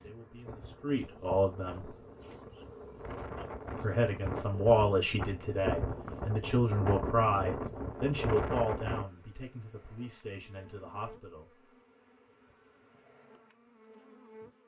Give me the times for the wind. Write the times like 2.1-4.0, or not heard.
0.1-9.1.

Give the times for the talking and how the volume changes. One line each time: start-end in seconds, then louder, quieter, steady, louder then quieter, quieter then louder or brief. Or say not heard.
0.0-1.9 brief
3.8-11.6 quieter.